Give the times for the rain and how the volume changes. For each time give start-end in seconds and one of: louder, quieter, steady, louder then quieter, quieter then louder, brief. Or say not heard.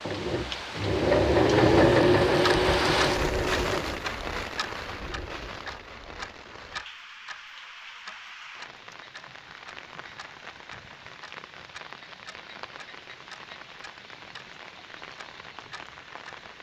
0.0-16.5 quieter.